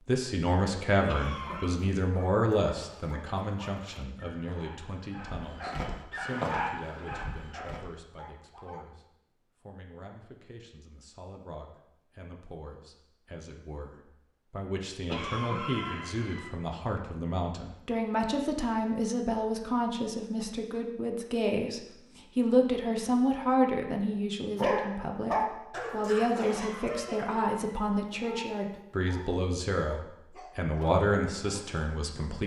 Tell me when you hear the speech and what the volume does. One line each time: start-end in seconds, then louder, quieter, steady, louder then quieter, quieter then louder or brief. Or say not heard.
0.1-32.4 quieter then louder.